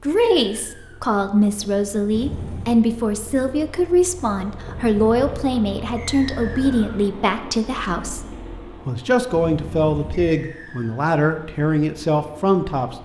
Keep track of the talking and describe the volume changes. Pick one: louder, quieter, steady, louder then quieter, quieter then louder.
steady.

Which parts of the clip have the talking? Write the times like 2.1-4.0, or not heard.
0.0-8.2, 8.8-13.0.